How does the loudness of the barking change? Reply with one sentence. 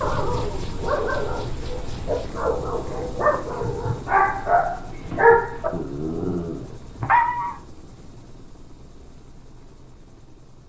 The loudness of the barking goes up, then down.